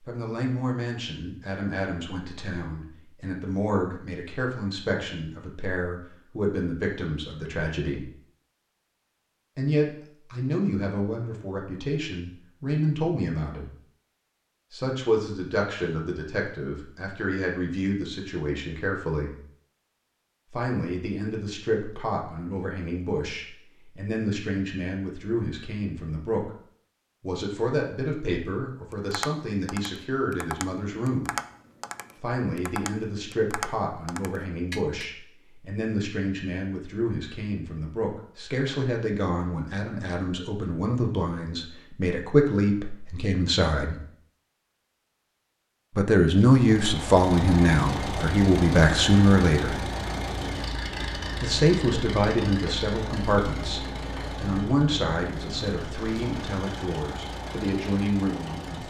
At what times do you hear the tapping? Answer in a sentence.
You can hear the tapping from 28.9 to 35.1 s.